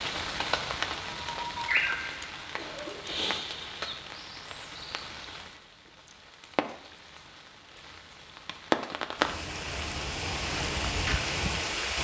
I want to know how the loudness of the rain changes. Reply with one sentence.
The loudness of the rain goes down, then up.